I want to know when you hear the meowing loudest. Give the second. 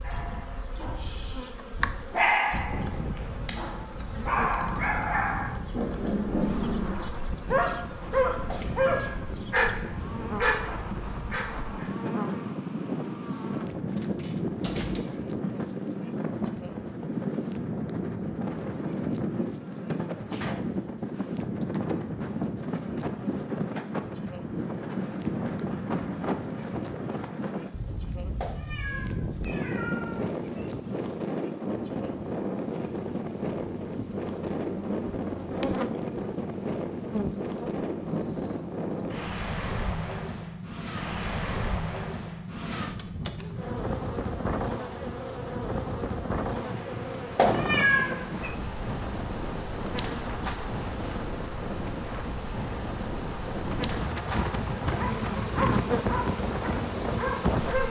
48 s.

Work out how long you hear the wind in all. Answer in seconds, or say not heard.
58 s.